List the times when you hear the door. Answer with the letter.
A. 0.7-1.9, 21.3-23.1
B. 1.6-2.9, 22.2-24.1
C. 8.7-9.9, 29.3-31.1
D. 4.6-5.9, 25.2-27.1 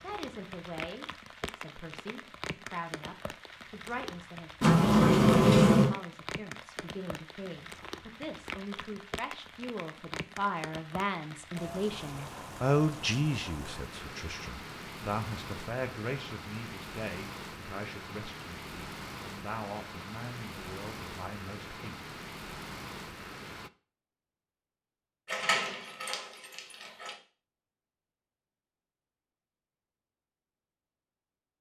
D.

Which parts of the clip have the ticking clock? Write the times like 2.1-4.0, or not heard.
not heard.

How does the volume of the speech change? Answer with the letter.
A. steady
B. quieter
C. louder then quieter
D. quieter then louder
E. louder
C.